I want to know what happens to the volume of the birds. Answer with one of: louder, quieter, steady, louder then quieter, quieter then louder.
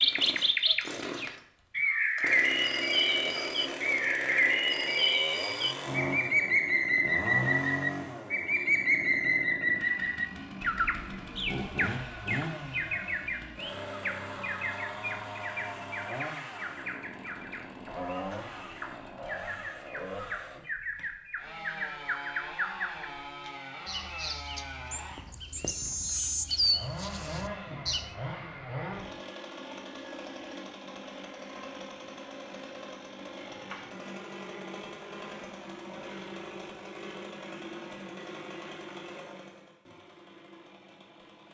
quieter then louder.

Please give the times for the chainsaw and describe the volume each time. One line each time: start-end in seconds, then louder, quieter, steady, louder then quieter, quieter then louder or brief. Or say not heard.
0.1-41.4 quieter.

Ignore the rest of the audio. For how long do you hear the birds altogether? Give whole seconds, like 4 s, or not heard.
28 s.